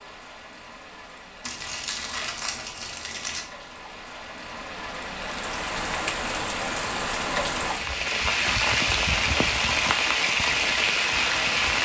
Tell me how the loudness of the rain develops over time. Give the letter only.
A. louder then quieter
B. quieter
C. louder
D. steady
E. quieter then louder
C.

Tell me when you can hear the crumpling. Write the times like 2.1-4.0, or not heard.
1.4-3.5.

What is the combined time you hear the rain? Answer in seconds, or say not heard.
12 s.